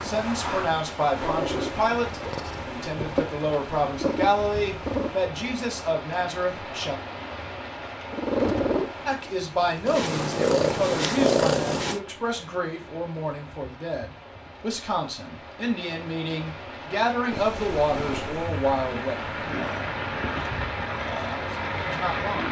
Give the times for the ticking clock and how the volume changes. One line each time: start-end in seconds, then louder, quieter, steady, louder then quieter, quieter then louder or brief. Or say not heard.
not heard.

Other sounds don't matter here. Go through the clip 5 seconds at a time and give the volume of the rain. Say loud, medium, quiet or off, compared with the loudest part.
medium, medium, quiet, medium, loud.